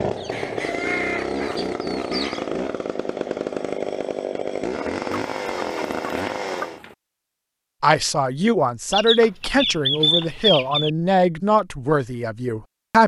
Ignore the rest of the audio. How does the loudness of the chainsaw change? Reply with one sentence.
The loudness of the chainsaw stays about the same.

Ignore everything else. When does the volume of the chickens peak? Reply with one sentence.
The volume of the chickens peaks at 10 seconds.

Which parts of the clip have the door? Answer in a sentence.
You can't hear the door here.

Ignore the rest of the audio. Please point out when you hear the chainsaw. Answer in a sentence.
You can hear the chainsaw from 0.0 to 6.8 s.